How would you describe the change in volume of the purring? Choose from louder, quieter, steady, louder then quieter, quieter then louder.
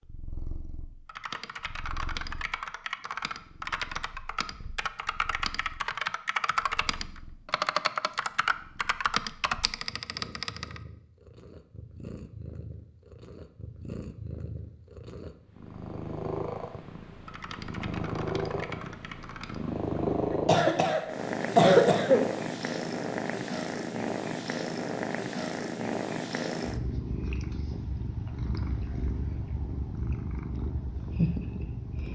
louder.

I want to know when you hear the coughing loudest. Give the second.
22 s.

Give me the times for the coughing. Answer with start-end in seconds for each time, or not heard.
20.3-22.3.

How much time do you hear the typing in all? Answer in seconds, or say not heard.
12 s.